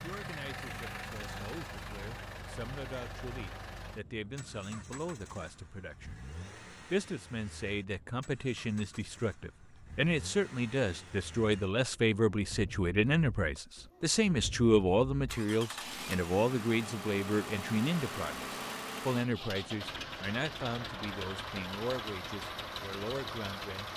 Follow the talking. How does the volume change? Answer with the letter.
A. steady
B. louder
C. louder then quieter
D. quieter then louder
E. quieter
C.